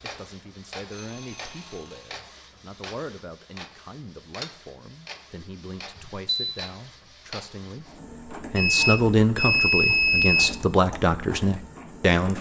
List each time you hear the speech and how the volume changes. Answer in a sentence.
You can hear the speech from 0.0 to 12.3 s, getting louder.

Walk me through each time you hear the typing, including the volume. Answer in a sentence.
You can't hear the typing here.